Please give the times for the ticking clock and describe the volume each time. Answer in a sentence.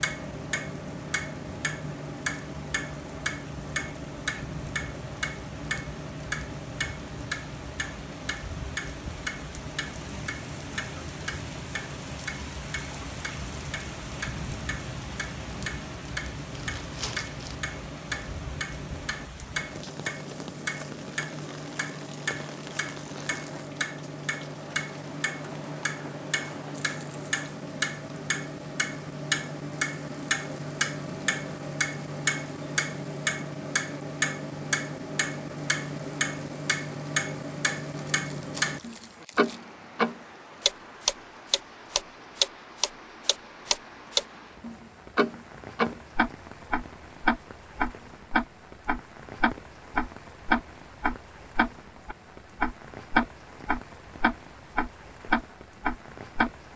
You can hear the ticking clock from 0.0 to 56.5 s, getting louder.